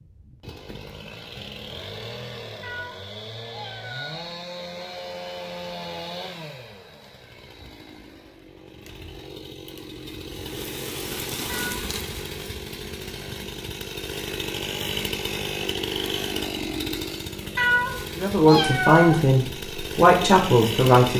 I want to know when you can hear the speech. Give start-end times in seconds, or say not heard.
18.1-21.1.